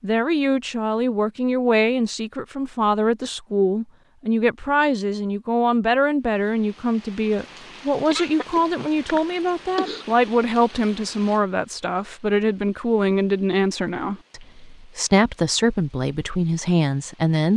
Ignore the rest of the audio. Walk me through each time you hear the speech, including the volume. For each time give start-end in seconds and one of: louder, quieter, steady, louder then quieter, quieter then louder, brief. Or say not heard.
0.0-17.5 steady.